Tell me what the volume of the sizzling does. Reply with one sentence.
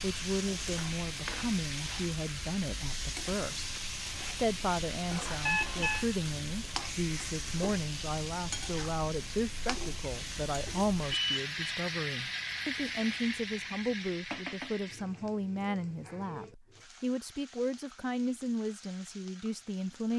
The loudness of the sizzling goes down.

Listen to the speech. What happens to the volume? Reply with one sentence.
The volume of the speech stays about the same.